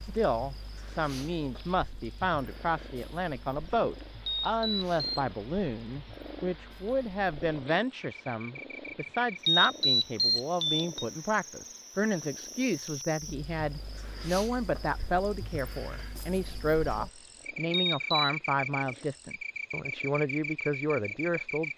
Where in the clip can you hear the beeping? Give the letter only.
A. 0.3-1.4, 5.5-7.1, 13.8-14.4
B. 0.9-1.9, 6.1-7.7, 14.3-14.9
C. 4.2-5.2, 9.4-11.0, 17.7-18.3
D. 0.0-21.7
C.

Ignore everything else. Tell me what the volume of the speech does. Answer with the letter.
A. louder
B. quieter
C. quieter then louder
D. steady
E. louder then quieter
D.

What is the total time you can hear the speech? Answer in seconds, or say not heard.
22 s.